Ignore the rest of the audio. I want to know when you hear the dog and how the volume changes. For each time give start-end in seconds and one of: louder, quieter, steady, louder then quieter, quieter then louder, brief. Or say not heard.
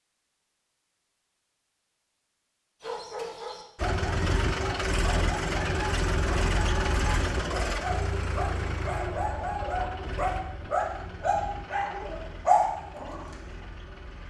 2.8-13.2 louder.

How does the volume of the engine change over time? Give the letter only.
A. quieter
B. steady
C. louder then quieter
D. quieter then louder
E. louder
A.